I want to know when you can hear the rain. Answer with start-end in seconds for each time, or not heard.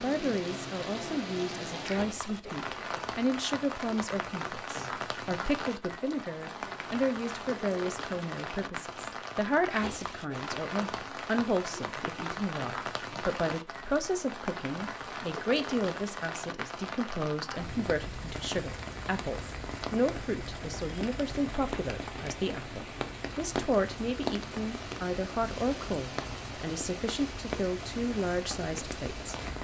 0.0-29.6.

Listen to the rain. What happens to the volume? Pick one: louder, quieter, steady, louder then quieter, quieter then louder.
steady.